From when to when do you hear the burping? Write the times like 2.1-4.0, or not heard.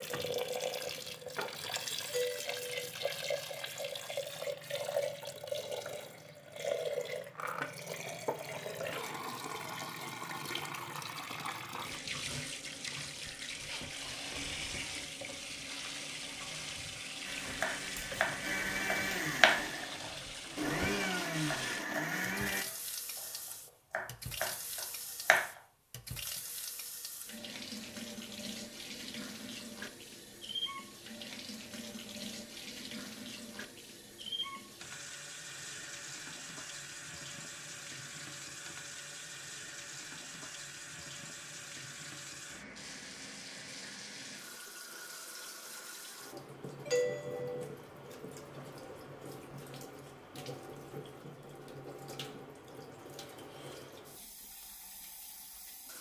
not heard.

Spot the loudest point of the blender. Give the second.
21 s.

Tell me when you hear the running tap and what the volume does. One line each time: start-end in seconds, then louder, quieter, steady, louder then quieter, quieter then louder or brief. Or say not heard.
0.0-55.9 quieter.